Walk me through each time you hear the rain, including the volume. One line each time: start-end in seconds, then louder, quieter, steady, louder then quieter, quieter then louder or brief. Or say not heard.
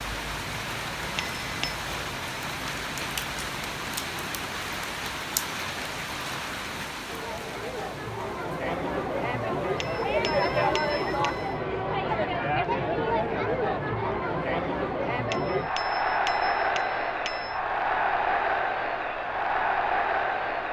0.0-11.6 quieter.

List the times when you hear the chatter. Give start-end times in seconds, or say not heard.
7.0-20.6.